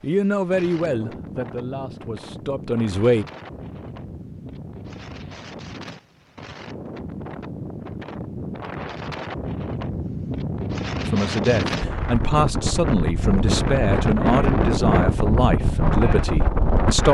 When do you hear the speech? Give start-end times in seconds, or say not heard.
0.0-3.2, 11.1-17.0.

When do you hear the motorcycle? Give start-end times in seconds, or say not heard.
not heard.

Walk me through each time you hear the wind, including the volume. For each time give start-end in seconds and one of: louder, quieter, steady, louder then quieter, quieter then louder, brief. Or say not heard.
0.0-17.0 louder.